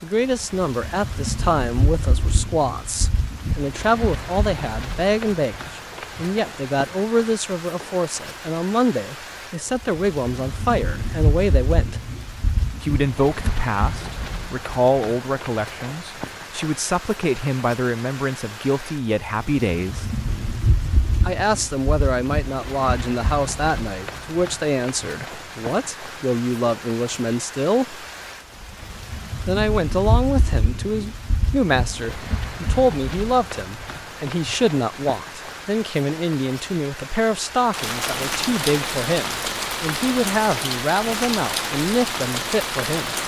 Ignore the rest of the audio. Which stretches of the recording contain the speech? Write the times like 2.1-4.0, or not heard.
0.0-12.0, 12.8-20.1, 21.2-28.1, 29.4-43.1.